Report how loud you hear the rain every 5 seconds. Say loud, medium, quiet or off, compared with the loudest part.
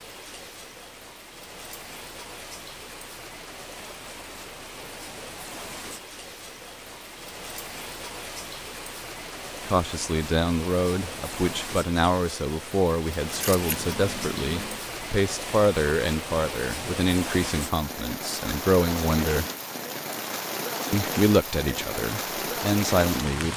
medium, medium, medium, loud, loud.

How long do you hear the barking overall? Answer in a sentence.
You can't hear the barking here.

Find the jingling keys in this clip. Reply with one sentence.
The jingling keys can be heard from 13.3 to 14.8 s.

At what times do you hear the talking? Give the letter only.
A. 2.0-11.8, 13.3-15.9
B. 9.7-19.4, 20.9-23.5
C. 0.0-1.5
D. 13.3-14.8
B.